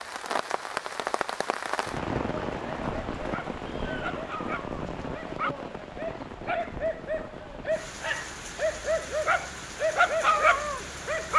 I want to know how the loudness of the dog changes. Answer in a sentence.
The volume of the dog goes up.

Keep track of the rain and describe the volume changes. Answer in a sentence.
The volume of the rain goes down.